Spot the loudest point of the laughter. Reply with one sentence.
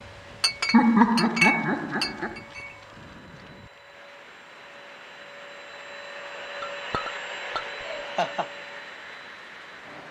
The volume of the laughter peaks at 1 second.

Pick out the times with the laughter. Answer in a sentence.
You can hear the laughter from 0.7 to 2.4 s and from 7.8 to 8.5 s.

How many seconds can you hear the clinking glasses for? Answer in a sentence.
You can hear the clinking glasses for 4 seconds altogether.